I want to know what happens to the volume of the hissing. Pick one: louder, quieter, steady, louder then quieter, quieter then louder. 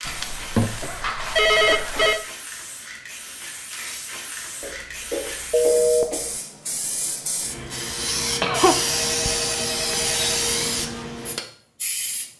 louder.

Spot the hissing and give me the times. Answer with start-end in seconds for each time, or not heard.
0.0-12.3.